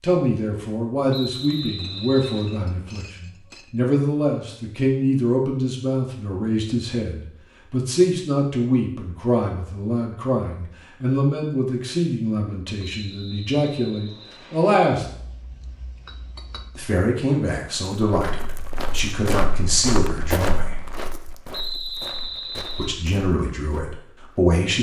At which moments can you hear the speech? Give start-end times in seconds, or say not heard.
0.0-15.1, 16.8-20.8, 22.8-24.7.